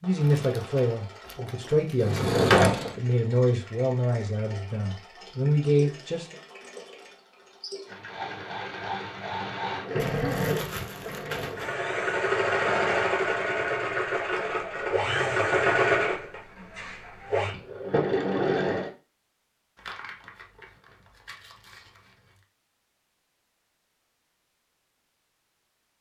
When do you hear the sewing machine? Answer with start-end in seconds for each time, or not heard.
0.0-18.9.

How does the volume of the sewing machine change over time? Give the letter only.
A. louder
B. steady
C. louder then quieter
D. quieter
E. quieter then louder
A.